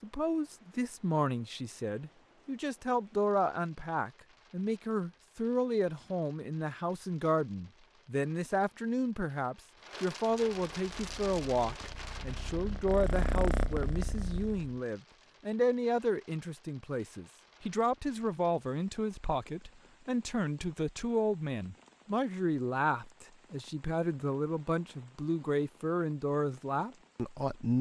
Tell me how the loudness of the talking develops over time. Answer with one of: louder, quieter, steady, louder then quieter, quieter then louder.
steady.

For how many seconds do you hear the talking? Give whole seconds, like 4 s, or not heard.
28 s.